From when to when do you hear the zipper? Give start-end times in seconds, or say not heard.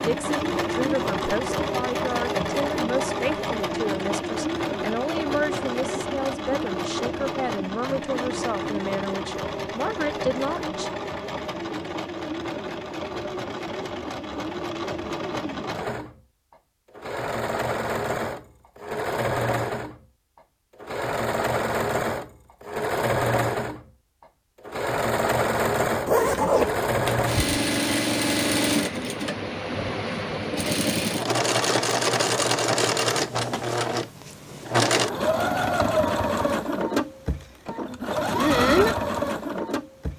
26.1-27.4.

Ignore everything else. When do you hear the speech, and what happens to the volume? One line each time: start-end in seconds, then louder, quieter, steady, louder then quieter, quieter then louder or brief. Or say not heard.
0.0-10.9 steady.